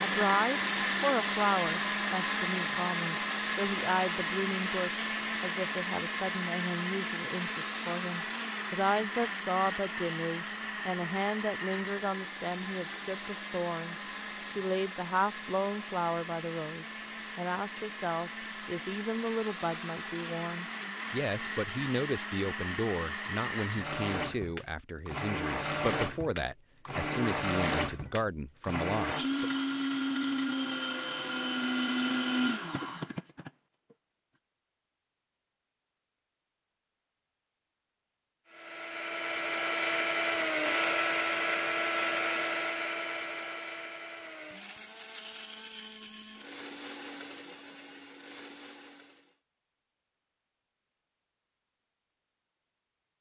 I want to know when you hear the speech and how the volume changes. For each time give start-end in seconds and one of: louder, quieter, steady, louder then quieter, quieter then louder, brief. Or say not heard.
0.0-29.5 steady.